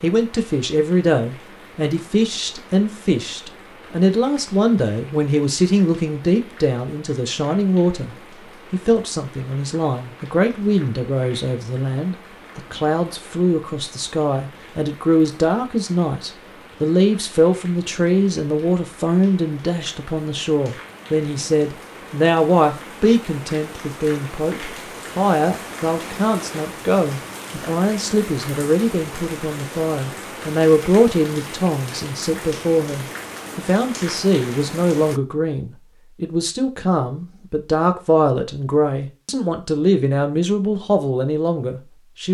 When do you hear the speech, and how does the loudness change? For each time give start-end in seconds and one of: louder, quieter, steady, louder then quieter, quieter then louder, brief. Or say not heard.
0.0-42.2 steady.